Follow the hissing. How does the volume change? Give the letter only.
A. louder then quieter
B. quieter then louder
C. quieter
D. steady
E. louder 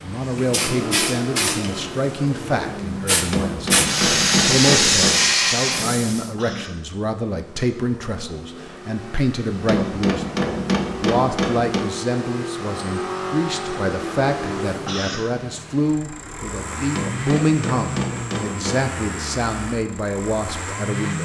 B.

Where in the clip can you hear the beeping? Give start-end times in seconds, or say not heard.
not heard.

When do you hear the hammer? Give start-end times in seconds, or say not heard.
3.3-5.2, 9.7-11.8, 16.9-18.9.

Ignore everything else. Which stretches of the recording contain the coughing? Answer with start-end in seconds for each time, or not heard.
6.3-6.8, 14.8-15.3.